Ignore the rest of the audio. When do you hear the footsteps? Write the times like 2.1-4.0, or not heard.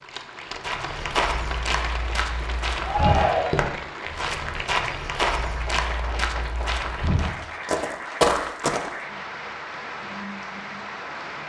0.6-8.9.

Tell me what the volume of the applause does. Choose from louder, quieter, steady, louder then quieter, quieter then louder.
steady.